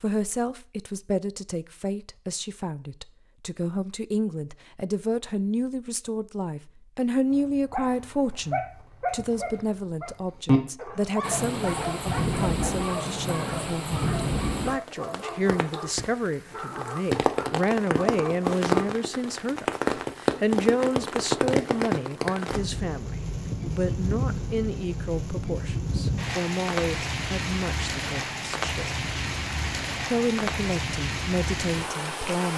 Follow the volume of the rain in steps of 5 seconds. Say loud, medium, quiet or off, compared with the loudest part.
off, off, loud, loud, loud, loud, loud.